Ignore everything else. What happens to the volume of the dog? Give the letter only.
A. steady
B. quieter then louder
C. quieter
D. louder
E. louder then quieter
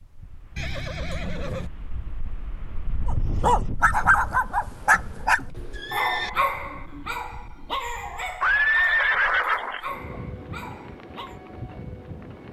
C.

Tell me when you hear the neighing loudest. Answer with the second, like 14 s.
9 s.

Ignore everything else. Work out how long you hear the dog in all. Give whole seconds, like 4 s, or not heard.
8 s.